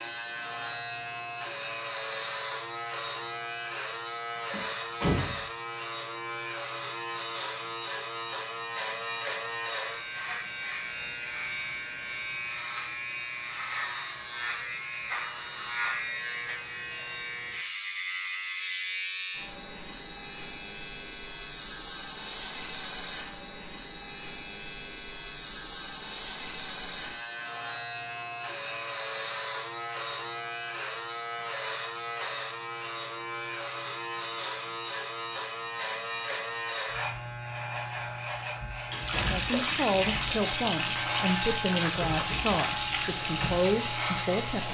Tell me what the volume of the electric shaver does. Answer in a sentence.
The volume of the electric shaver stays about the same.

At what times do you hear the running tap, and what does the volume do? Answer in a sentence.
You can hear the running tap from 38.9 to 44.6 s, at a steady volume.